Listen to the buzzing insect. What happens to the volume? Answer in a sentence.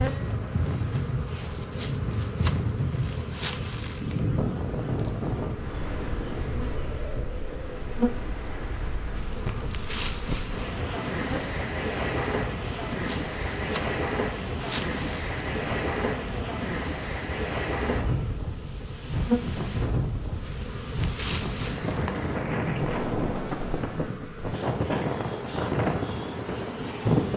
The loudness of the buzzing insect stays about the same.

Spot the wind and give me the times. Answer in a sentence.
The wind can be heard from 0.0 to 27.3 s.